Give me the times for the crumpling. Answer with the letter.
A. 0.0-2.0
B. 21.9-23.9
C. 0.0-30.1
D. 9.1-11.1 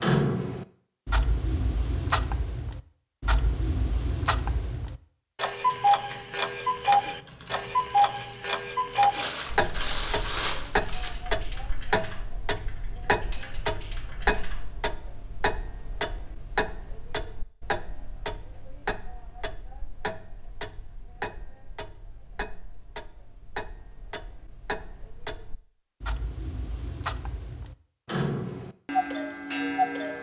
D.